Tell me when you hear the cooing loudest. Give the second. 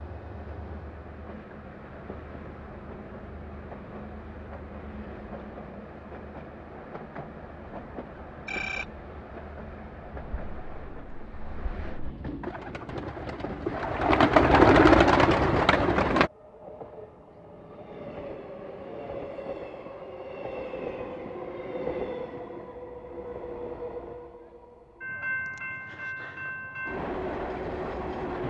15 s.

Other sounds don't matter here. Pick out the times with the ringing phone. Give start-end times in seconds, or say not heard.
8.4-8.8.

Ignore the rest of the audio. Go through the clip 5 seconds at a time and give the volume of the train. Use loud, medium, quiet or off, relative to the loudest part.
medium, medium, medium, medium, loud, loud.